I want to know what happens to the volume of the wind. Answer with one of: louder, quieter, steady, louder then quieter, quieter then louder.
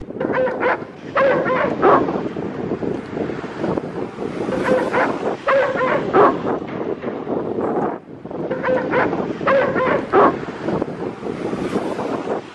steady.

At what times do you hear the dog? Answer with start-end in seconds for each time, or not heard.
0.2-2.2, 4.5-6.5, 8.5-10.3.